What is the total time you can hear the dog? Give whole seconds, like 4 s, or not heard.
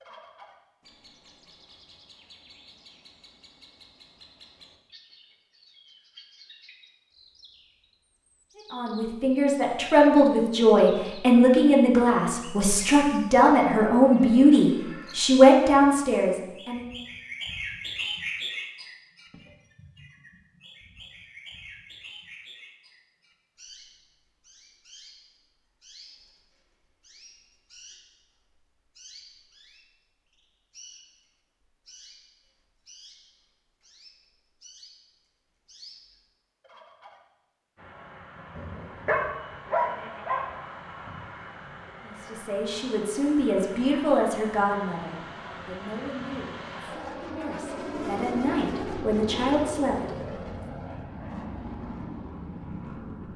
2 s.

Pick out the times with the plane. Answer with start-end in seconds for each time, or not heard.
37.8-53.3.